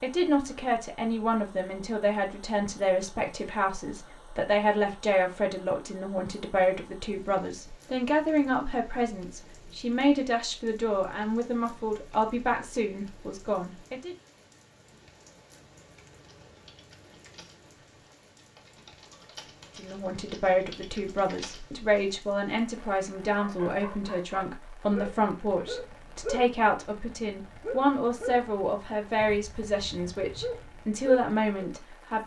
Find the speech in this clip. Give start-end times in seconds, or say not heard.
0.0-14.2, 19.8-32.2.